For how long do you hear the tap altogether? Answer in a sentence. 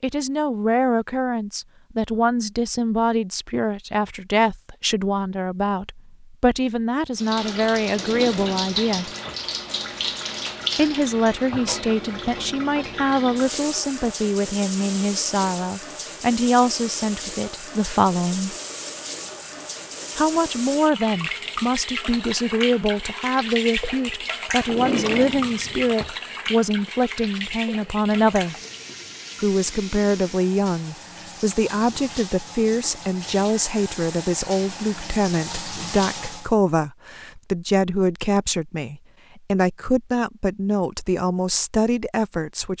The tap can be heard for 29 seconds in total.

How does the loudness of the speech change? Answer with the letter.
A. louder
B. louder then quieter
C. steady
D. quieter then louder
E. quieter
C.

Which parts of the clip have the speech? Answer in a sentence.
The speech can be heard from 0.0 to 9.1 s, from 10.8 to 18.6 s, from 20.1 to 28.6 s and from 29.4 to 42.7 s.